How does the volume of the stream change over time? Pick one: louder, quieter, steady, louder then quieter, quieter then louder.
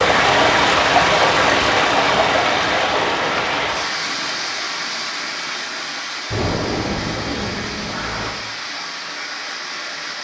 quieter.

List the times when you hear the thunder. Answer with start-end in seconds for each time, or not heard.
6.3-8.3.